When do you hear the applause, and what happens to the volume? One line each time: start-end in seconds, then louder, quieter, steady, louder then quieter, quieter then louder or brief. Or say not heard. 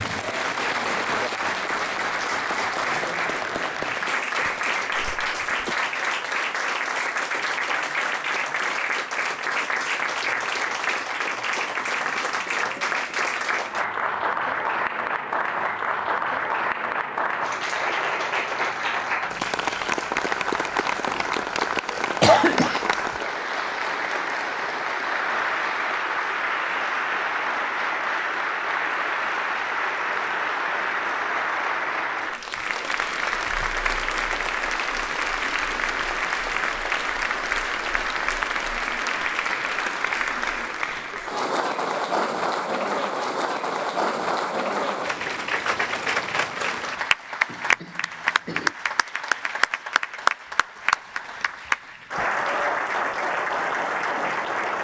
0.0-54.7 steady.